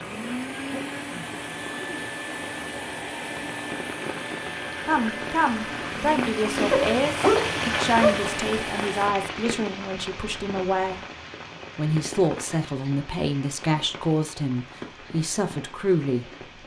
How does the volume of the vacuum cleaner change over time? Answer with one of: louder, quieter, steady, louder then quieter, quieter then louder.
steady.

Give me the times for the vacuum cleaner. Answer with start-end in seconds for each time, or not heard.
0.0-9.2.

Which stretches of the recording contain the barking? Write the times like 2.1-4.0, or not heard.
6.7-8.3.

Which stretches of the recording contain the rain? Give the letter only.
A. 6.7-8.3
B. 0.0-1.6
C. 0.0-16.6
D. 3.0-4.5
C.